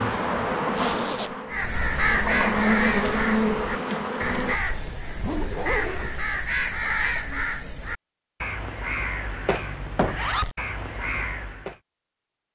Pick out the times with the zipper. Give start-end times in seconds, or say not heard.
0.8-1.4, 4.5-6.3, 10.0-10.6.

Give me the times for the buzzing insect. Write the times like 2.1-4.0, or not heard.
0.0-4.6.